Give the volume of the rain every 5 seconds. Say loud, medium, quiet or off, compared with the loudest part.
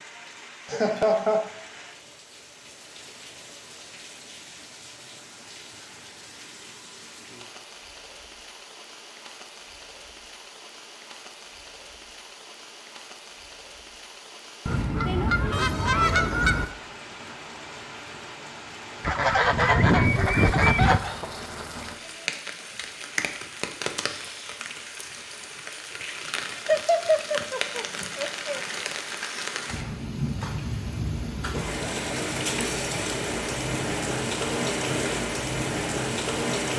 quiet, quiet, quiet, quiet, medium, medium, loud, loud.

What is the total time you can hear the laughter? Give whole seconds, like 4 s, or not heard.
4 s.